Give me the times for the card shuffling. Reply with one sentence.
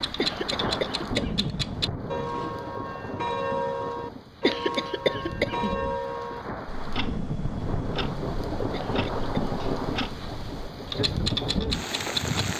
The card shuffling can't be heard in this clip.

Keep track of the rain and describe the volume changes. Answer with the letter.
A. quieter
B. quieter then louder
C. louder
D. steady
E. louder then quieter
B.